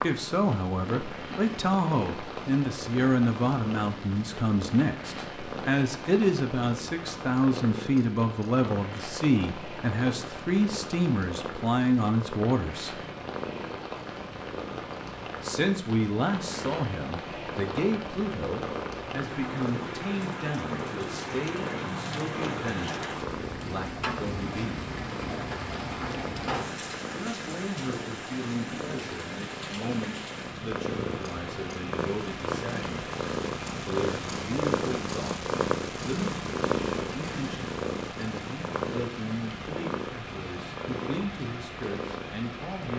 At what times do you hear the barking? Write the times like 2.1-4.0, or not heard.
not heard.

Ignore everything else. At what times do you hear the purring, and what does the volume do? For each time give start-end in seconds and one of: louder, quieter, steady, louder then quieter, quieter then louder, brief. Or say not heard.
0.0-42.9 louder.